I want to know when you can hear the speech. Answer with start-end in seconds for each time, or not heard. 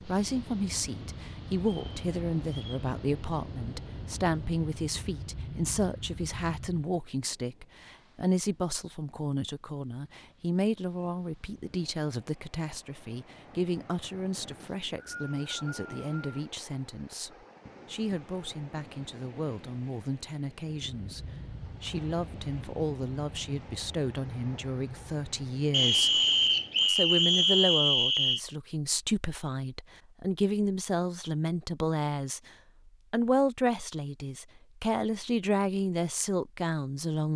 0.1-26.2, 26.9-32.4, 33.1-37.3.